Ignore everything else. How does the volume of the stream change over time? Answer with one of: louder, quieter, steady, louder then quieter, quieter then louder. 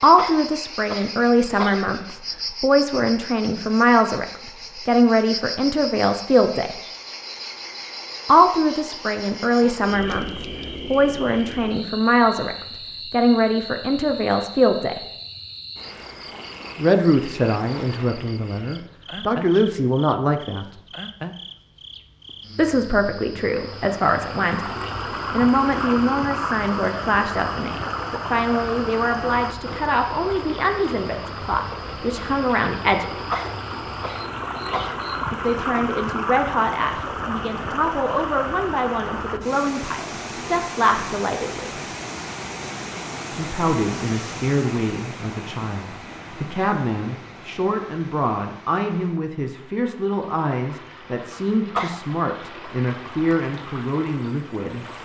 quieter.